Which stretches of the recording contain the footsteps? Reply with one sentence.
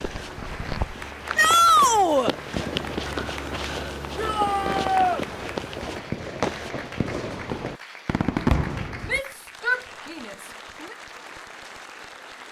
You can hear the footsteps from 0.0 to 6.7 s.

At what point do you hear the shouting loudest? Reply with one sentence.
The loudest moment of the shouting is at 2 seconds.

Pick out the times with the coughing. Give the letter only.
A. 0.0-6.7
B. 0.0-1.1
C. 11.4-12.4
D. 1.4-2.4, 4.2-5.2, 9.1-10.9
B.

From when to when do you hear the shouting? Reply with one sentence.
You can hear the shouting from 1.4 to 2.4 s, from 4.2 to 5.2 s and from 9.1 to 10.9 s.